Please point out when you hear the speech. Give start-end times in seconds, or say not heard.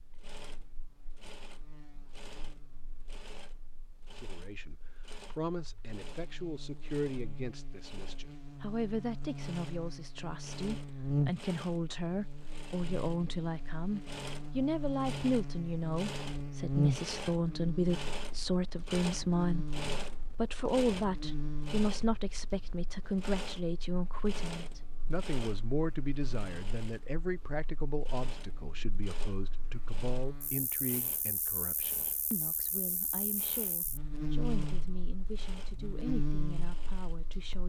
4.2-19.8, 20.4-37.6.